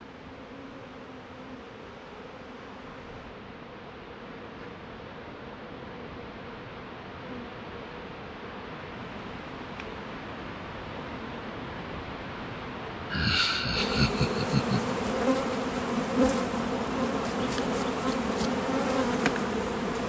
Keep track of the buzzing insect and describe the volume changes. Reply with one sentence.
The loudness of the buzzing insect goes up.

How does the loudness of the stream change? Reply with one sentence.
The volume of the stream goes up.